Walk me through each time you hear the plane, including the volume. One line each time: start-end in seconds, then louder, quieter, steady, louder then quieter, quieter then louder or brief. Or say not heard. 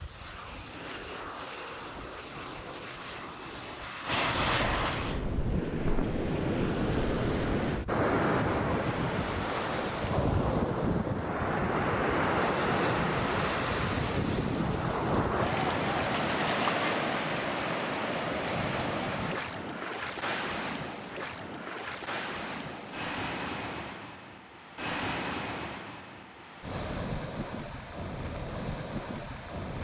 0.0-5.2 louder.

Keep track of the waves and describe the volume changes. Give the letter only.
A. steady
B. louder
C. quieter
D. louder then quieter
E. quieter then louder
C.